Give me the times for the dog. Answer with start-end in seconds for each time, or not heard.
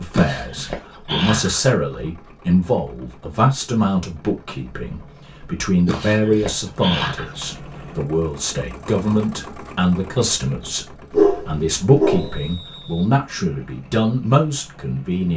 0.1-1.7, 5.8-7.5, 11.1-12.6.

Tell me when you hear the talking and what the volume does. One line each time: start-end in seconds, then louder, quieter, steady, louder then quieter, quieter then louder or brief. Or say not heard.
0.0-15.3 steady.